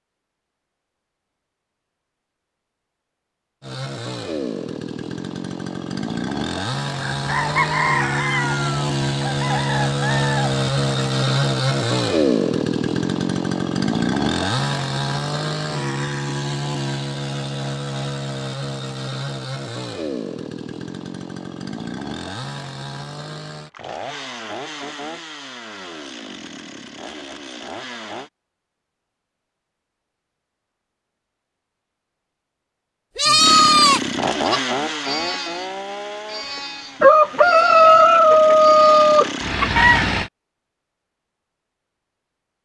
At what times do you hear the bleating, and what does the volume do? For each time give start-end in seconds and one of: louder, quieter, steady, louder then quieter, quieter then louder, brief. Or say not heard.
33.1-39.2 quieter.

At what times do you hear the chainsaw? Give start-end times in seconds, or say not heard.
3.6-28.3, 33.4-40.3.